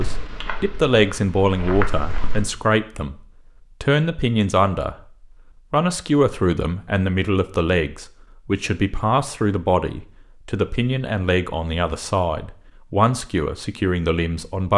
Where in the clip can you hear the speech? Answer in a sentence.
You can hear the speech from 0.0 to 3.2 s, from 3.8 to 5.0 s and from 5.7 to 14.7 s.